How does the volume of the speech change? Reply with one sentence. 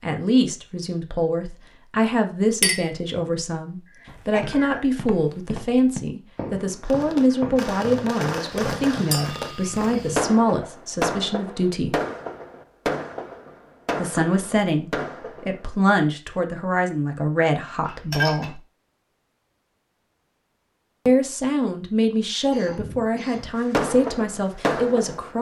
The loudness of the speech stays about the same.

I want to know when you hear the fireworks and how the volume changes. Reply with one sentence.
You can hear the fireworks from 6.8 to 15.7 s, at a steady volume; and briefly from 23.4 to 25.3 s.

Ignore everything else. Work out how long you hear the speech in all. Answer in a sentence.
You can hear the speech for 21 seconds altogether.